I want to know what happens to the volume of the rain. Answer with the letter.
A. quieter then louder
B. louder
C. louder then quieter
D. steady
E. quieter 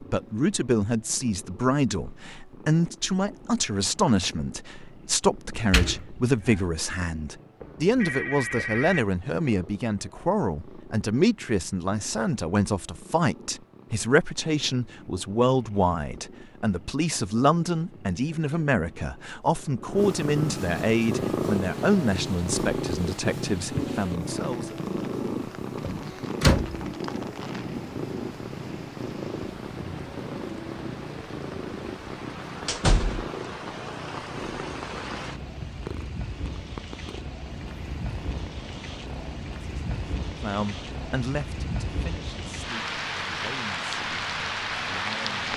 B.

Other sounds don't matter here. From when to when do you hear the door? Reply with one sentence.
You can hear the door from 5.7 to 6.6 s, from 25.8 to 26.9 s and from 32.6 to 33.2 s.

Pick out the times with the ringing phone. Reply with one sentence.
The ringing phone can be heard from 7.6 to 9.1 s.